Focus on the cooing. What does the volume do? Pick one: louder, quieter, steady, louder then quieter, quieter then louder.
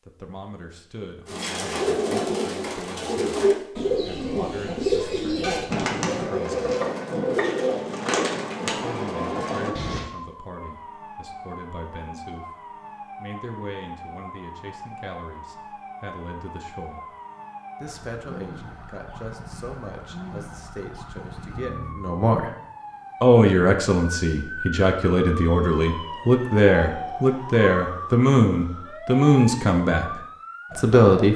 steady.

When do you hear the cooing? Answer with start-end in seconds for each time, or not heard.
1.2-10.1.